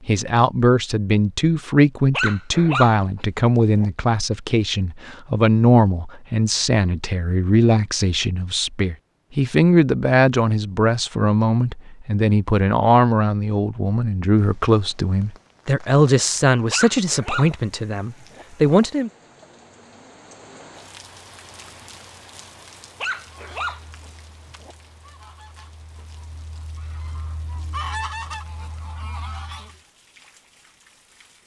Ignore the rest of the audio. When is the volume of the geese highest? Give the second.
28 s.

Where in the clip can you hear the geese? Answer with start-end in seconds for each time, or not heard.
23.2-29.8.